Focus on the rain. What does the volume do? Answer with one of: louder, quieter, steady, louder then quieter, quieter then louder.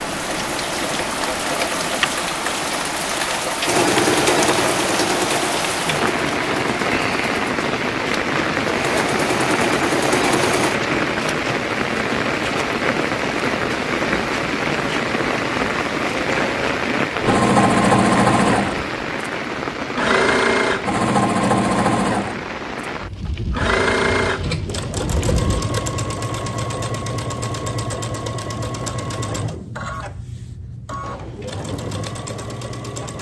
quieter.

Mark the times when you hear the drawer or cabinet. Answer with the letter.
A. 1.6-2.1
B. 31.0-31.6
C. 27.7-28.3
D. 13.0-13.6
B.